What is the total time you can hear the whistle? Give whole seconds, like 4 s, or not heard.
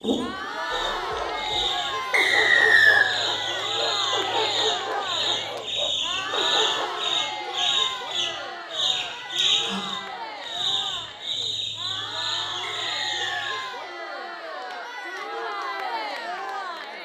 2 s.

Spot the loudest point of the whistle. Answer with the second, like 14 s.
3 s.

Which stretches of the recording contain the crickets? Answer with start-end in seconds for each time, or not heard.
0.0-13.7.